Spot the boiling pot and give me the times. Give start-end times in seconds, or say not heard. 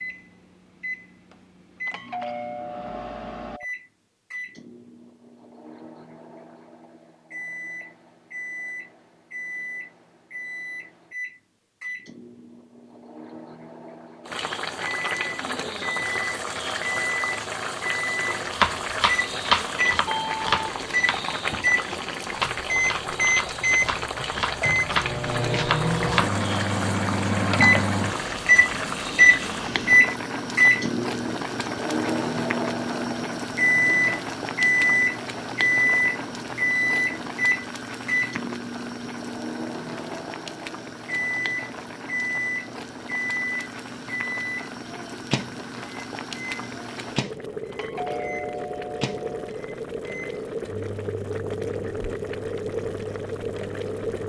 14.2-54.2.